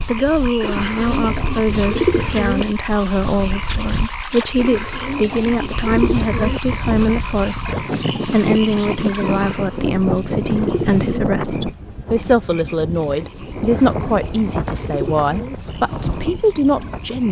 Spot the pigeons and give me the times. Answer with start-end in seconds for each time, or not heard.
0.6-2.6, 4.5-6.6, 9.3-11.3, 13.6-15.6.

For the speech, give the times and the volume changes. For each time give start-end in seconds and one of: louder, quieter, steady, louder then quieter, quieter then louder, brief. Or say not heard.
0.0-17.2 steady.